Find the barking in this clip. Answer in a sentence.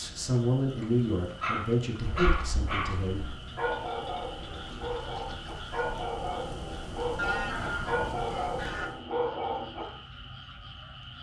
The barking can be heard from 1.4 to 9.8 s.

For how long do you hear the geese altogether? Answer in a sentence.
The geese can be heard for 2 seconds in total.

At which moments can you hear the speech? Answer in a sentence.
The speech can be heard from 0.0 to 3.2 s.